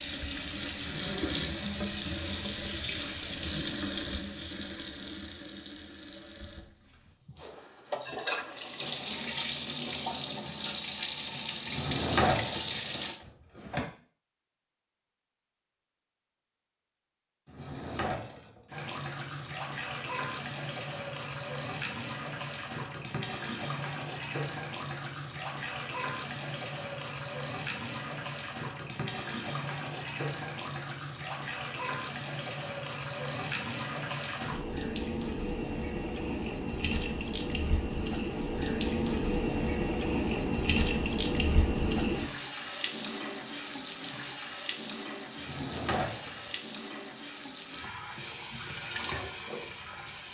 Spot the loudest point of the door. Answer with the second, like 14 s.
12 s.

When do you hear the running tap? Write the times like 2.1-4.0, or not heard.
0.0-13.2, 18.7-50.2.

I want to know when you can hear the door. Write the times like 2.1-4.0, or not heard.
11.7-13.8, 17.4-18.6, 45.4-46.5.